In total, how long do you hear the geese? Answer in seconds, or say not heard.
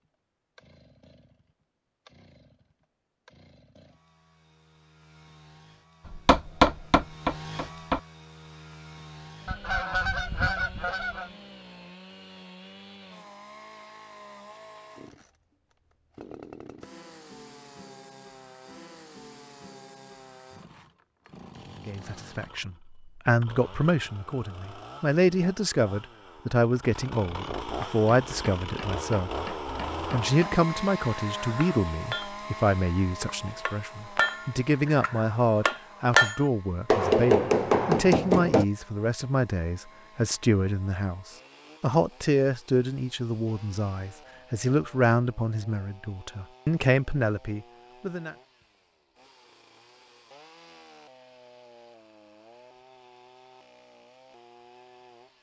2 s.